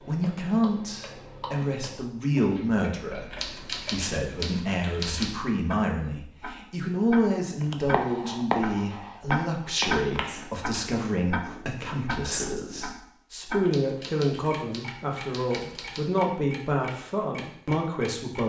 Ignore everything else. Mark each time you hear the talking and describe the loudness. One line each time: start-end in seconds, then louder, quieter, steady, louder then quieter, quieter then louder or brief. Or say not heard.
0.0-18.4 steady.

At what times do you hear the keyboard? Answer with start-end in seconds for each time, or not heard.
3.3-5.3, 13.6-16.1.